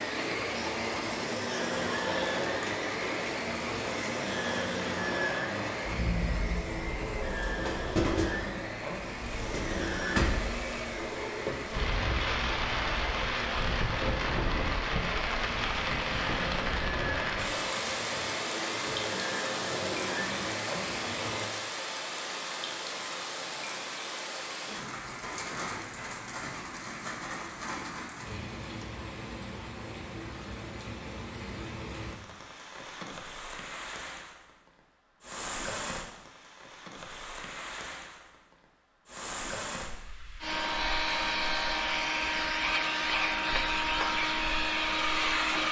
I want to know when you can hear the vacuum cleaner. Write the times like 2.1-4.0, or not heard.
0.0-21.6, 40.4-45.6.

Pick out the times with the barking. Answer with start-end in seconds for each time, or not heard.
not heard.